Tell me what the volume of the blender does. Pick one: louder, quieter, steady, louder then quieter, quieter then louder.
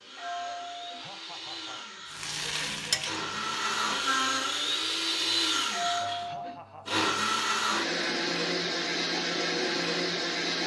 louder.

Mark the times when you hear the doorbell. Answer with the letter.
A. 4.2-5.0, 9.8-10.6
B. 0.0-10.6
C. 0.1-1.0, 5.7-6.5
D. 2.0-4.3
C.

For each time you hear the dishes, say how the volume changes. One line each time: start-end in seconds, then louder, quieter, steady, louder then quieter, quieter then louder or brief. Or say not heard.
not heard.